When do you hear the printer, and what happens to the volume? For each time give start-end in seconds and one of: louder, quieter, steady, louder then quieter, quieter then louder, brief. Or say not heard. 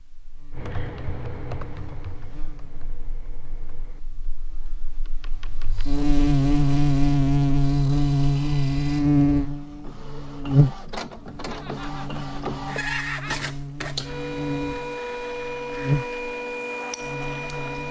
5.5-17.8 louder.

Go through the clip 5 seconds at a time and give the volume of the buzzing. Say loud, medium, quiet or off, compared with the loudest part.
quiet, loud, medium, medium.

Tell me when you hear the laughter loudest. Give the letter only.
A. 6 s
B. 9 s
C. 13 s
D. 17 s
C.